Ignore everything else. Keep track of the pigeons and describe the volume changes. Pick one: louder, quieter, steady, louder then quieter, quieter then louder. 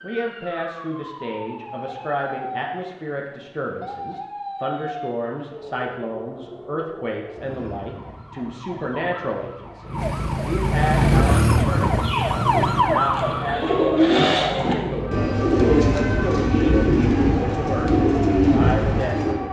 louder.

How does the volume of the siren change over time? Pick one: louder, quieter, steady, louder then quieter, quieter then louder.
louder then quieter.